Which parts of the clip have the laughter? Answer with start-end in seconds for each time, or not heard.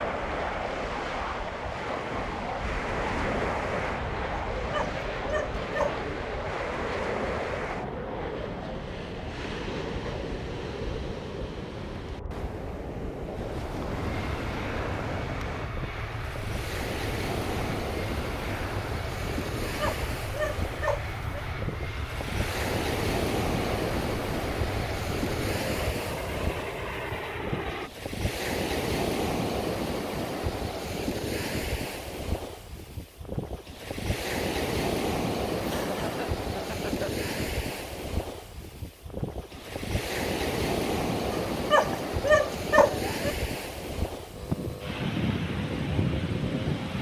35.6-37.1.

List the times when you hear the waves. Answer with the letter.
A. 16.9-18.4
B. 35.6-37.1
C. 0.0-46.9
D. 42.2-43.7
C.